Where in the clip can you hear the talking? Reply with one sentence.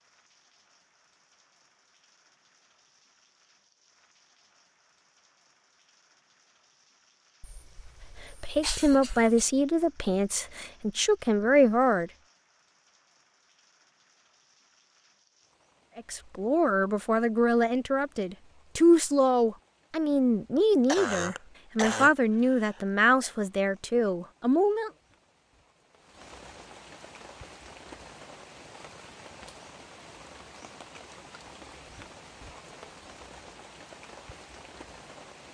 The talking can be heard from 8.4 to 12.1 s and from 15.9 to 24.9 s.